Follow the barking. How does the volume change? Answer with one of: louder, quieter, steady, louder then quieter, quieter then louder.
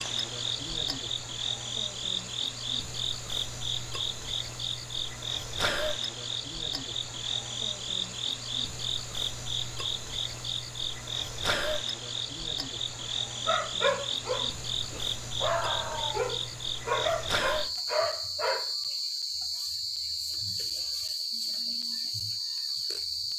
quieter then louder.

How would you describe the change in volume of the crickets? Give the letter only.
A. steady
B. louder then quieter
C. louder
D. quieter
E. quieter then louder
A.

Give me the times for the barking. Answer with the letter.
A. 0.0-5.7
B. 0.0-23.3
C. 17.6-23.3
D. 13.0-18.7
D.